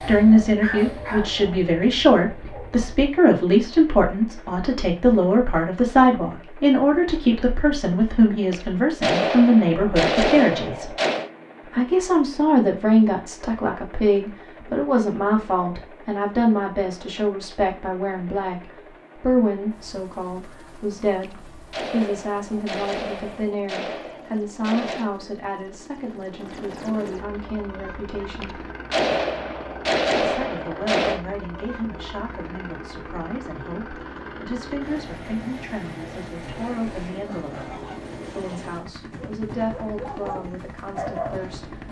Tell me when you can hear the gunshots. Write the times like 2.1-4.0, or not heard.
8.5-11.3, 21.2-25.1, 28.4-31.2.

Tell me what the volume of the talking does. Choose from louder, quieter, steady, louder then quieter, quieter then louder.
quieter.